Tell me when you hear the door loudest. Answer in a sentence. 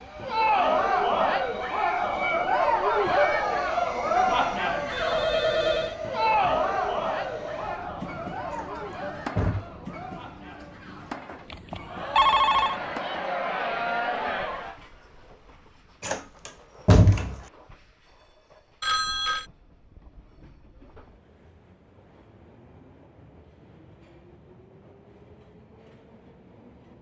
The loudest moment of the door is at 17 seconds.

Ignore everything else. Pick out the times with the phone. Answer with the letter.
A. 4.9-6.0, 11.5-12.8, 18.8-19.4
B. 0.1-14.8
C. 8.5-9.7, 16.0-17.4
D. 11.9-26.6
A.